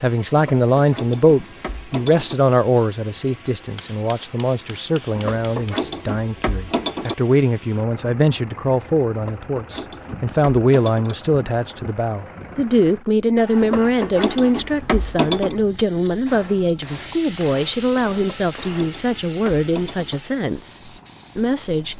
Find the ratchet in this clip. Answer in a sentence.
The ratchet can be heard from 0.3 to 2.4 s, from 5.2 to 7.2 s, from 9.2 to 11.2 s, from 13.6 to 15.6 s and from 18.1 to 20.2 s.